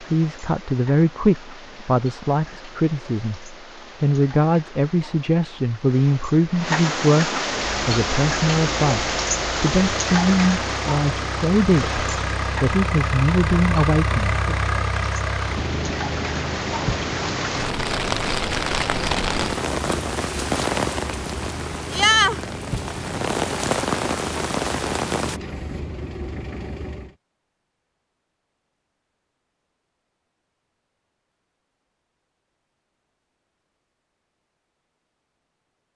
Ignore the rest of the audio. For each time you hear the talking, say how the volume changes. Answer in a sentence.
The talking can be heard from 0.0 to 14.6 s, at a steady volume.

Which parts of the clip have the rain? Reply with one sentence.
You can hear the rain from 0.0 to 25.4 s.